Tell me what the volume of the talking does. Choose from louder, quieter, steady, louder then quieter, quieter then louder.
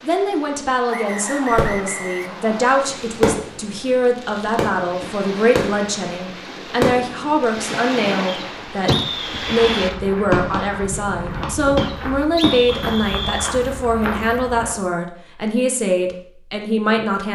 steady.